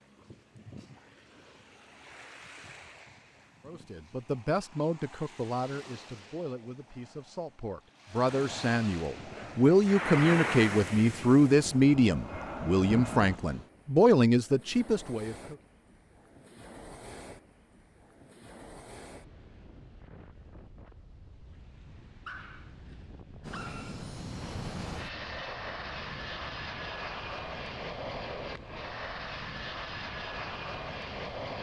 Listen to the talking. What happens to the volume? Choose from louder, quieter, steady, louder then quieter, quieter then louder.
louder.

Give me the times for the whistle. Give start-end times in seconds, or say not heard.
not heard.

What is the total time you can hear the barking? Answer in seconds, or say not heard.
2 s.